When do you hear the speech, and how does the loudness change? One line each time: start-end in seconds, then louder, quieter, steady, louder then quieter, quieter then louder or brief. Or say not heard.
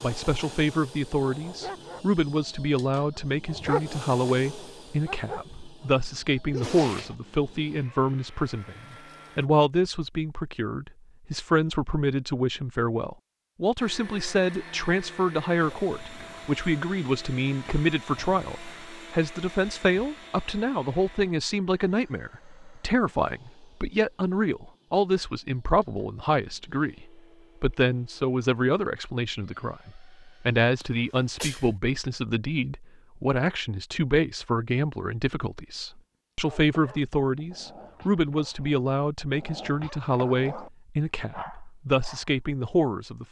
0.0-43.2 steady.